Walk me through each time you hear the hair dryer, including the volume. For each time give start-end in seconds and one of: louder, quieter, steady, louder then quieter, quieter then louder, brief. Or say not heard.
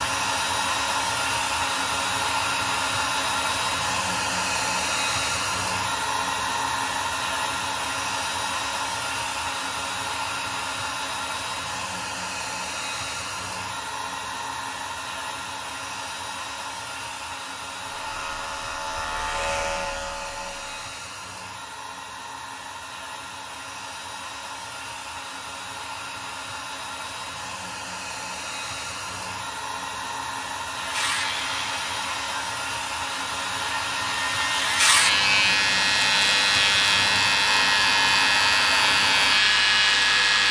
0.0-40.4 quieter then louder.